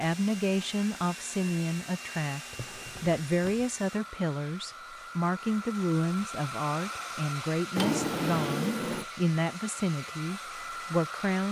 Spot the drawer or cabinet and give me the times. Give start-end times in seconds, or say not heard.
2.5-3.8, 7.8-9.1.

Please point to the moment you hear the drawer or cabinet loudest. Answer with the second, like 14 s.
8 s.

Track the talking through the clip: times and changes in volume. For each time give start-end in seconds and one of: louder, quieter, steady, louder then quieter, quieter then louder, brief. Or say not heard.
0.0-11.4 steady.